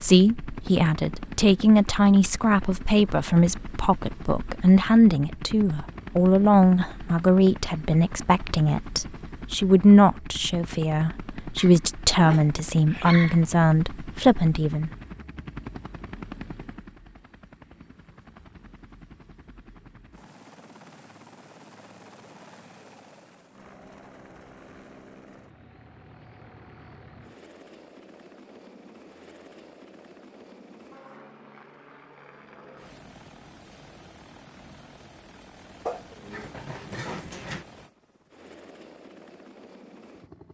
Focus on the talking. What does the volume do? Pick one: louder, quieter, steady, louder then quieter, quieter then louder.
steady.